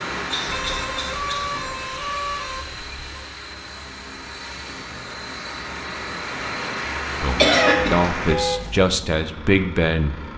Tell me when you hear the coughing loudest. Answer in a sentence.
The loudest moment of the coughing is at 8 seconds.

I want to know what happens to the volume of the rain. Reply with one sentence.
The volume of the rain goes down, then up.